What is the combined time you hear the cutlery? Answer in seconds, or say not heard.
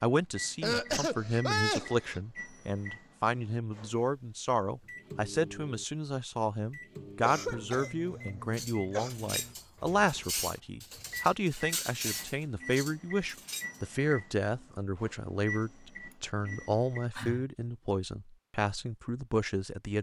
5 s.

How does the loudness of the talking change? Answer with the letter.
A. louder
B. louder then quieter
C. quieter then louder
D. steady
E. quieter
D.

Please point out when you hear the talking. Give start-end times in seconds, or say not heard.
0.0-19.9.